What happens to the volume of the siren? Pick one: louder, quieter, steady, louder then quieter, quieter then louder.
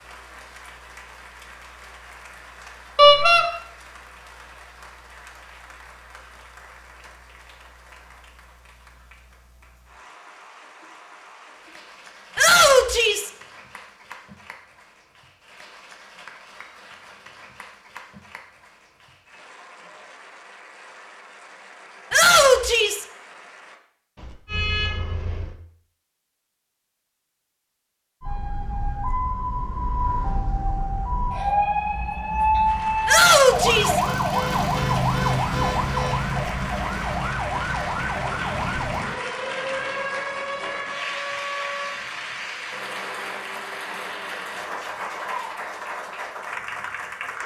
louder then quieter.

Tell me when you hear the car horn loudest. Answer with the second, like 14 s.
3 s.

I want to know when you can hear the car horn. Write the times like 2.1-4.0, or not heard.
3.0-3.5, 24.1-25.6, 34.1-36.3.